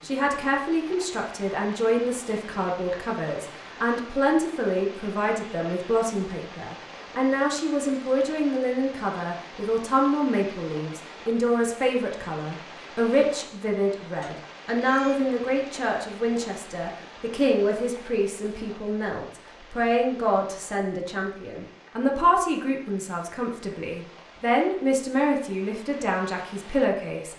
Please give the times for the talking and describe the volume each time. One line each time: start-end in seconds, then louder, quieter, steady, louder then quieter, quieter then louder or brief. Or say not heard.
0.0-27.3 steady.